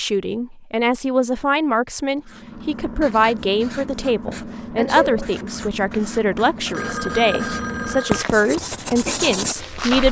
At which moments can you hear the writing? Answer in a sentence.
The writing can be heard from 2.2 to 10.0 s.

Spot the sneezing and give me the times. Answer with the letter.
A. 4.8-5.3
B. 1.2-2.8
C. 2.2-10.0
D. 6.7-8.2
A.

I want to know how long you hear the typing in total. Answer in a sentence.
You can't hear the typing here.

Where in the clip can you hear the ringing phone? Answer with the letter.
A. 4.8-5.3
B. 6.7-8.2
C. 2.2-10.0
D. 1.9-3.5
B.